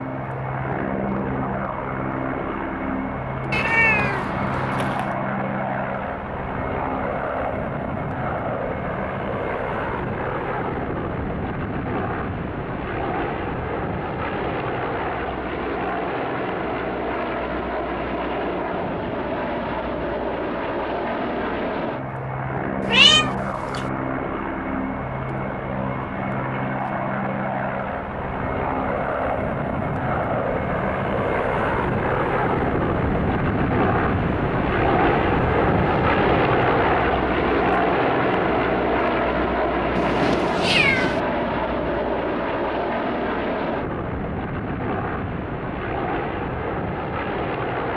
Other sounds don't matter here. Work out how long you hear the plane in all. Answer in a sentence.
You can hear the plane for 48 seconds altogether.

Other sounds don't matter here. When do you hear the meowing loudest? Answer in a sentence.
The volume of the meowing peaks at 23 seconds.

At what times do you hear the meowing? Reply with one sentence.
You can hear the meowing from 3.5 to 5.2 s, from 22.9 to 23.8 s and from 40.0 to 41.2 s.